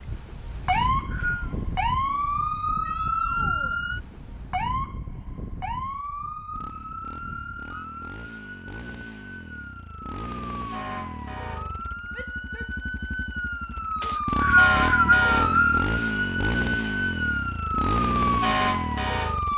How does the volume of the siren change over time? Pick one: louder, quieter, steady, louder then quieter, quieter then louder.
quieter then louder.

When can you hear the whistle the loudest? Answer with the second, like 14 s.
15 s.